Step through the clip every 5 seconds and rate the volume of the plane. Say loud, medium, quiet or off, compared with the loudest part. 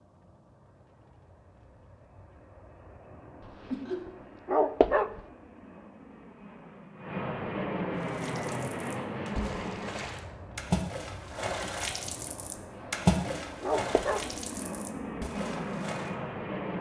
quiet, loud, medium, loud.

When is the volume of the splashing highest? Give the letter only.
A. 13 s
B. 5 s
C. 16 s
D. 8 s
A.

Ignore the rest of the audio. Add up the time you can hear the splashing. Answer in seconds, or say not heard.
8 s.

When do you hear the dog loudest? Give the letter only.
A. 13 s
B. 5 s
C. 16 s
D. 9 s
B.